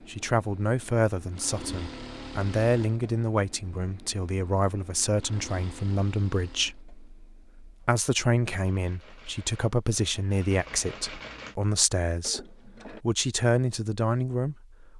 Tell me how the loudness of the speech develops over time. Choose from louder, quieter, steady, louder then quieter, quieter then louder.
steady.